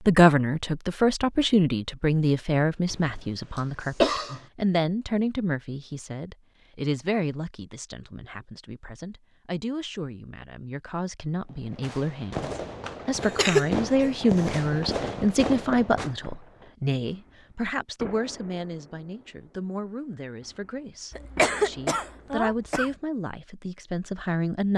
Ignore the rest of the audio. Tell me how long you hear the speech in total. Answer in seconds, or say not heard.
25 s.